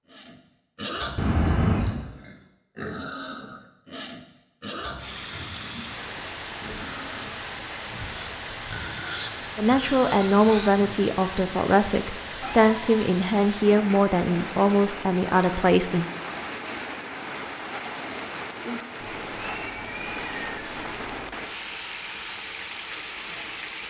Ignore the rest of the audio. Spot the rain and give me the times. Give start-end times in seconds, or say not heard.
5.0-23.8.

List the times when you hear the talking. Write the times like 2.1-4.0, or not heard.
9.6-16.1.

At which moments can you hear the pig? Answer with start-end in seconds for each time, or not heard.
0.1-10.9.